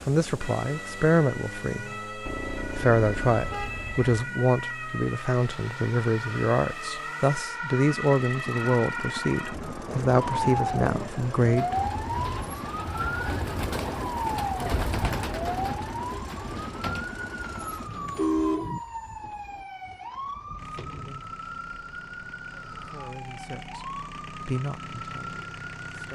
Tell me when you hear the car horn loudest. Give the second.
18 s.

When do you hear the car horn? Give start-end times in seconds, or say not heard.
2.2-4.2, 17.9-18.8.